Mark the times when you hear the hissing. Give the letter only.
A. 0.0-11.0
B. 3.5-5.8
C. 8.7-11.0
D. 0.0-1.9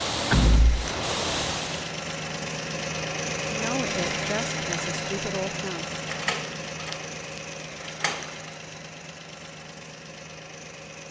D.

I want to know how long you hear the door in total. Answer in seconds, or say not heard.
3 s.